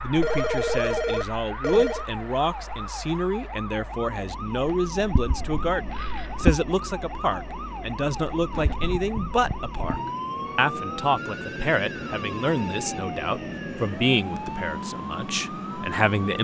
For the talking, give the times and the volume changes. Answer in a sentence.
You can hear the talking from 0.0 to 16.3 s, at a steady volume.